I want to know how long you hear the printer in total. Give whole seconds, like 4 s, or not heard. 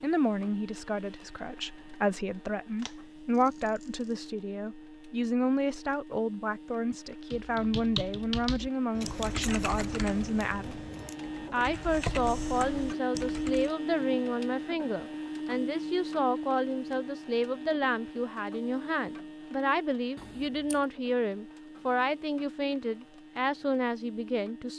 25 s.